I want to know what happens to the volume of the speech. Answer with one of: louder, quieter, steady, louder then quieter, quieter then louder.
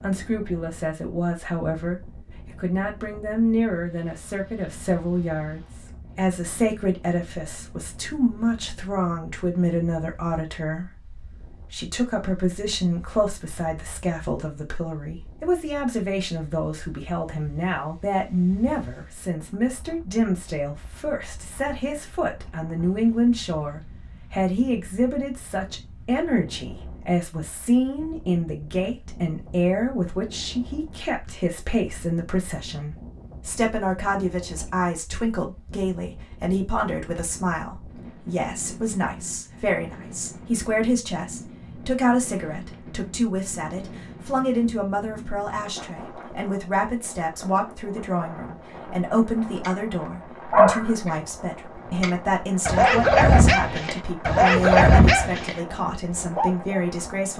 steady.